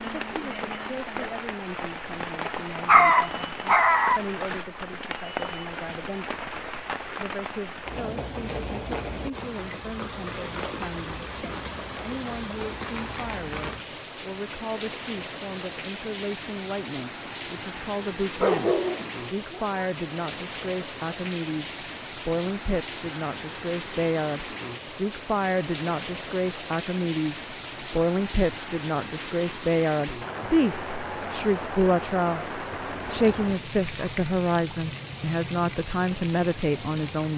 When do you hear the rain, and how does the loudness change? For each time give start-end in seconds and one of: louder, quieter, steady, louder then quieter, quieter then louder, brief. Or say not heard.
0.0-37.3 steady.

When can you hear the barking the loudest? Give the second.
3 s.